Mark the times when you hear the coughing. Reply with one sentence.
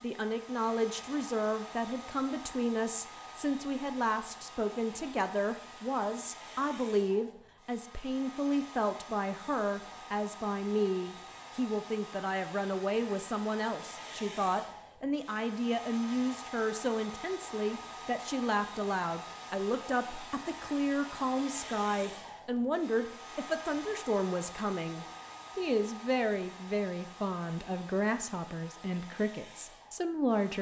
The coughing can't be heard in this clip.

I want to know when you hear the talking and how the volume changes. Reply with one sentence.
You can hear the talking from 0.0 to 30.5 s, at a steady volume.